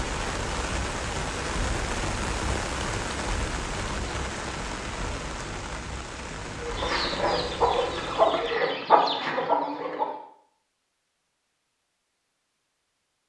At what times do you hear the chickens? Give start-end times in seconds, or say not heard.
6.6-10.2.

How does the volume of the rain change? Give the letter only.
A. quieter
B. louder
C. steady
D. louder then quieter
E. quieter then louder
A.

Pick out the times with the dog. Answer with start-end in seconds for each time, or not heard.
not heard.